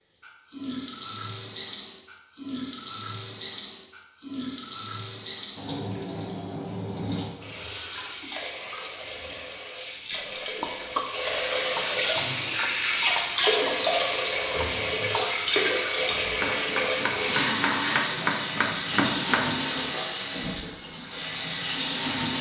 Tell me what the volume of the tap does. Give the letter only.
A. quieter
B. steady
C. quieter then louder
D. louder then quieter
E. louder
E.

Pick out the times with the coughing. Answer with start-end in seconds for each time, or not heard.
10.1-11.1.